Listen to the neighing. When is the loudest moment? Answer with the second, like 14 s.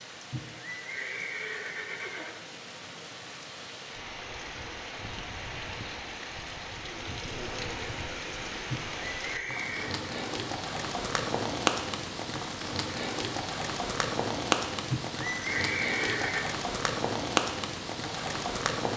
16 s.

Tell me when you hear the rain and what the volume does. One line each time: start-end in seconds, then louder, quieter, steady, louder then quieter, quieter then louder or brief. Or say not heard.
0.0-18.9 louder.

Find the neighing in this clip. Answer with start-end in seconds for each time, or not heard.
0.3-2.4, 8.7-10.1, 14.9-16.6.